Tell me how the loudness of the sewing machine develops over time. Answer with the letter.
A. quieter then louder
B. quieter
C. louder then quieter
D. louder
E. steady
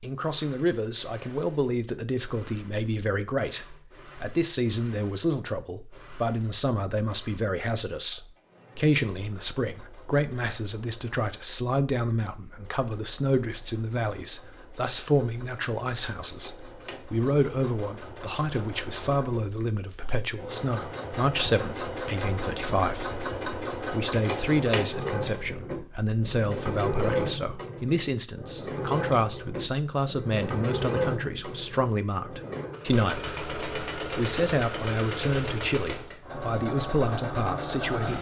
D.